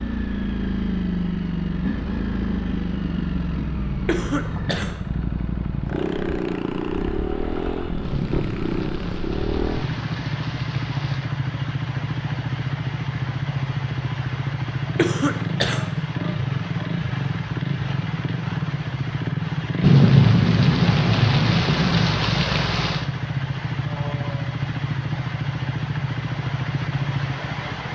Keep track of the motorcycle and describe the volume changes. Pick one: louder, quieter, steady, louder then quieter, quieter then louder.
steady.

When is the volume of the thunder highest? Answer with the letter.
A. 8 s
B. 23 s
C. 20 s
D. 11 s
C.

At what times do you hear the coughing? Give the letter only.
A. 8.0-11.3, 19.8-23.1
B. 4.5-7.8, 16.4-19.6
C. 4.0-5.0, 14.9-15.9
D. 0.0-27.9
C.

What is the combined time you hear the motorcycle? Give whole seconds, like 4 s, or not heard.
28 s.